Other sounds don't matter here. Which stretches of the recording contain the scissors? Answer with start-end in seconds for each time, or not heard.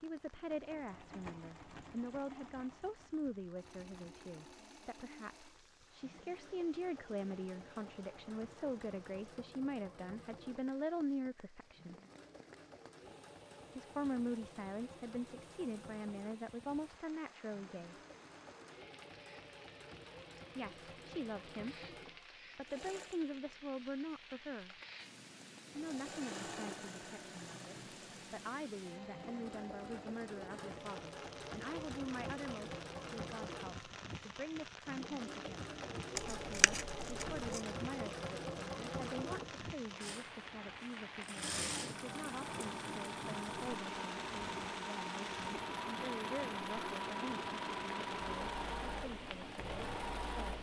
36.1-37.6.